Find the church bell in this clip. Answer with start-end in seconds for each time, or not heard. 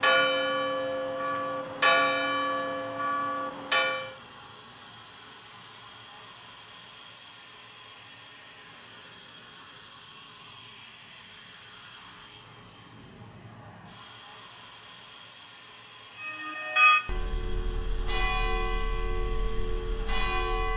0.0-4.2, 16.2-20.7.